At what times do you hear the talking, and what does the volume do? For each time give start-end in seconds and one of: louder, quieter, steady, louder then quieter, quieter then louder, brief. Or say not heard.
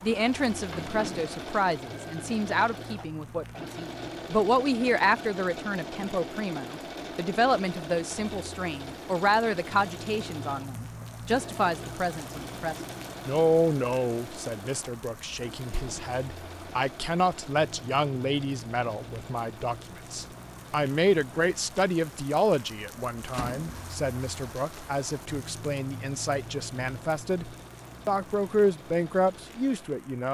0.0-30.3 steady.